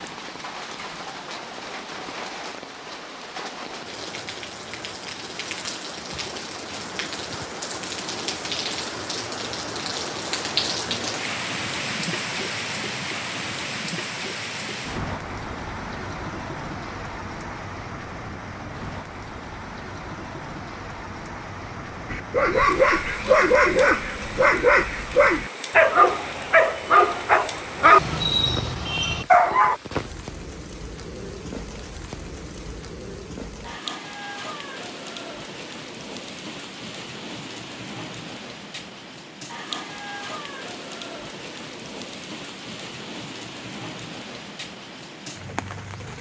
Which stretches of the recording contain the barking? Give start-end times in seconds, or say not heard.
22.1-29.8.